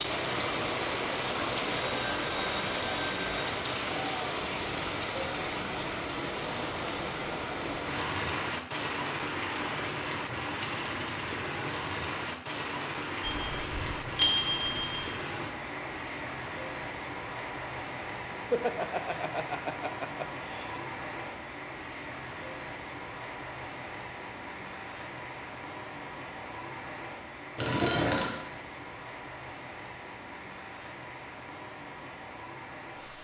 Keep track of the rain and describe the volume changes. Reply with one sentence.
The volume of the rain goes down.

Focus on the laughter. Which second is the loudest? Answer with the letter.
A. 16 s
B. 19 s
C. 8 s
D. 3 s
B.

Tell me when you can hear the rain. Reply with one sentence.
The rain can be heard from 0.0 to 33.1 s.